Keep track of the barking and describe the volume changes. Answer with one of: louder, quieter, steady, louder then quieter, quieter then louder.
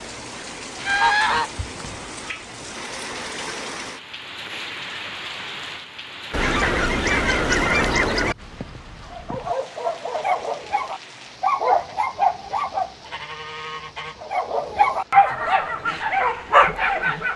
louder.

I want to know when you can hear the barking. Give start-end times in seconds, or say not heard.
9.1-12.9, 14.2-17.3.